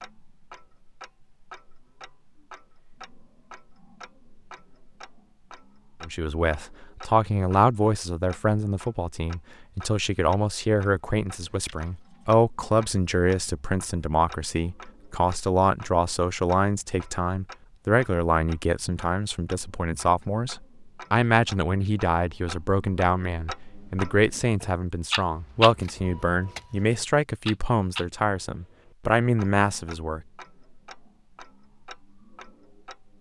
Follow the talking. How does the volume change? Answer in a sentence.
The loudness of the talking stays about the same.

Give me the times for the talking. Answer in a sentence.
The talking can be heard from 6.0 to 30.2 s.